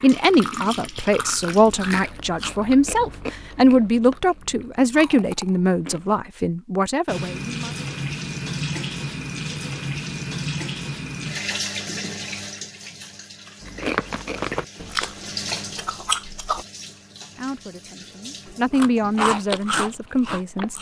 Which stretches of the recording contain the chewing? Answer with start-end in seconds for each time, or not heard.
0.2-6.2, 13.6-16.6, 18.4-20.7.